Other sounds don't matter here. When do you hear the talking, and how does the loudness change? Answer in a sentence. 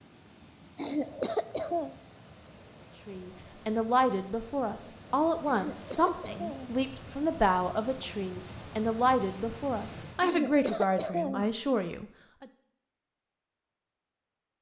You can hear the talking from 3.0 to 12.4 s, at a steady volume.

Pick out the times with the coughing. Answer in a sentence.
You can hear the coughing from 0.8 to 1.9 s, from 5.5 to 6.8 s and from 10.2 to 11.5 s.